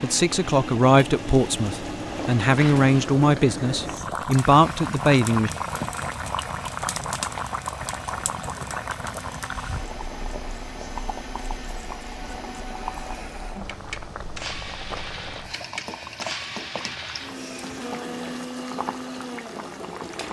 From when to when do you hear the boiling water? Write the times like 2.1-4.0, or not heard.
0.0-20.2.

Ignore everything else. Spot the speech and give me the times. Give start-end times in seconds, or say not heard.
0.0-5.5.